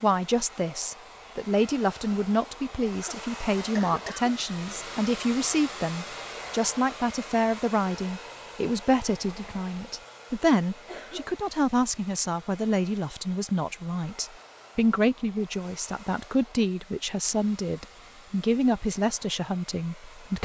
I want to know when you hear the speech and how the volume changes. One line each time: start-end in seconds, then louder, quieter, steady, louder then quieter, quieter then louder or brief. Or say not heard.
0.0-20.3 steady.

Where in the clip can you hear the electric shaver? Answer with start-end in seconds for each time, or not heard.
not heard.